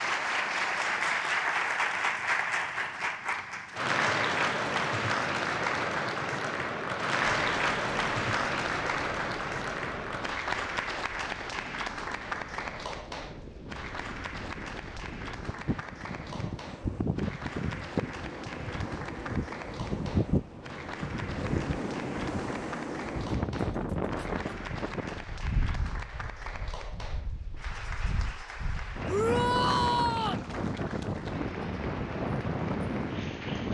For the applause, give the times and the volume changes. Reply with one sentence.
You can hear the applause from 0.0 to 33.6 s, getting quieter.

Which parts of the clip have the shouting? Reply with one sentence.
You can hear the shouting from 29.1 to 30.4 s.